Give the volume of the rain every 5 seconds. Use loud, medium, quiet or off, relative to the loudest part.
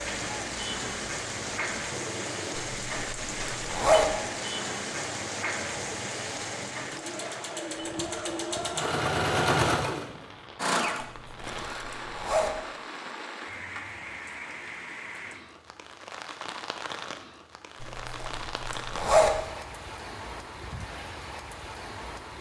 loud, loud, medium, medium, medium.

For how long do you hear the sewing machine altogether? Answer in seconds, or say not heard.
12 s.